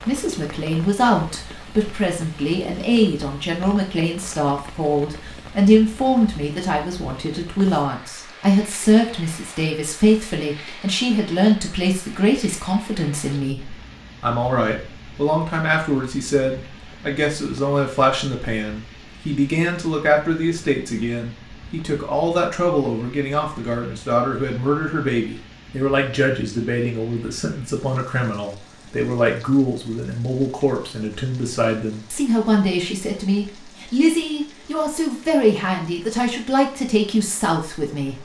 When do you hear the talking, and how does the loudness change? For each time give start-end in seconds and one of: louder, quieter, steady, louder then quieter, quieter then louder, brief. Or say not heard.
0.1-38.1 steady.